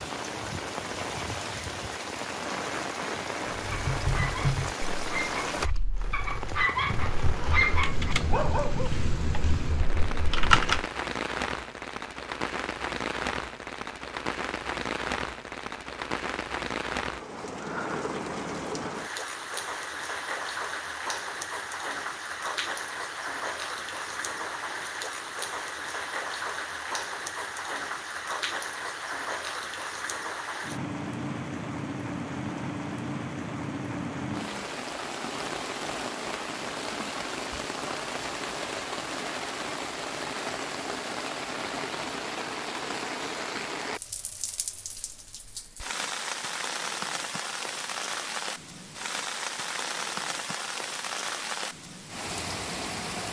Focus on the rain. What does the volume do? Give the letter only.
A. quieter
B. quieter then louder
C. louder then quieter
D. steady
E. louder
D.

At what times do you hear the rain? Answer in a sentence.
The rain can be heard from 0.0 to 53.2 s.